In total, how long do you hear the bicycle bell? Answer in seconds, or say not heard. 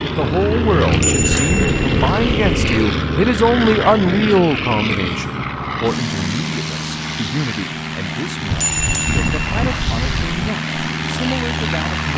4 s.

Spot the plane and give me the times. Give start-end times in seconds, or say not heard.
0.0-12.1.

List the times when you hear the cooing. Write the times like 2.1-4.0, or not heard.
not heard.